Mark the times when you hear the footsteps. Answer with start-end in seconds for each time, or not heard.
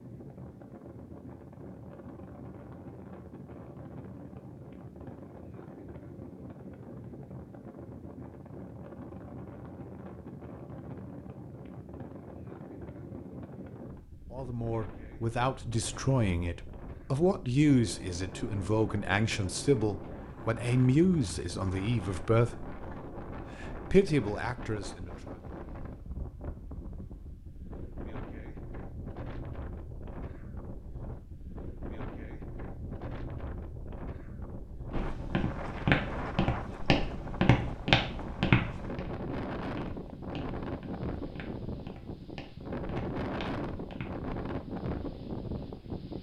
34.9-44.2.